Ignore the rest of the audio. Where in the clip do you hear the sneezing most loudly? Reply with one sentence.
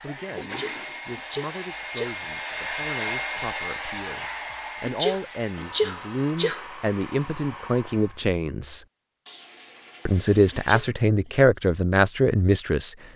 The loudest moment of the sneezing is at 6 seconds.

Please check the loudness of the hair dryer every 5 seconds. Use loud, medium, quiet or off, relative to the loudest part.
loud, medium, off.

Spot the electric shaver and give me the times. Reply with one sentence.
The electric shaver can't be heard in this clip.